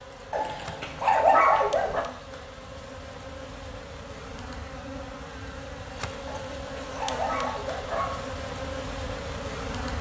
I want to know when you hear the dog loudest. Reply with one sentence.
The loudest moment of the dog is at 1 second.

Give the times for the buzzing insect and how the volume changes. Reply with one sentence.
You can hear the buzzing insect from 0.0 to 9.9 s, getting louder.